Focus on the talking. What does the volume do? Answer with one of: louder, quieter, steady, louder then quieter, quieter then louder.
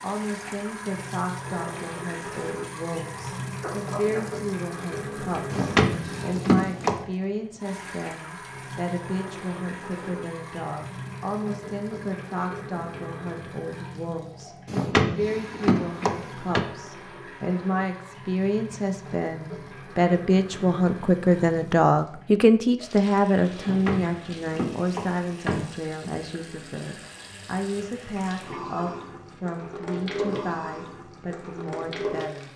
louder then quieter.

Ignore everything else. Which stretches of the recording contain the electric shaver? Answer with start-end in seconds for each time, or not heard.
not heard.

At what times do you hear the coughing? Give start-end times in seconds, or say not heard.
3.1-4.5.